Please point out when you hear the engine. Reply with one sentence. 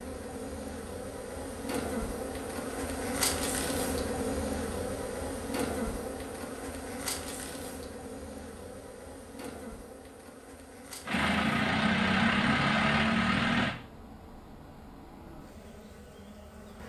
You can hear the engine from 11.1 to 13.8 s.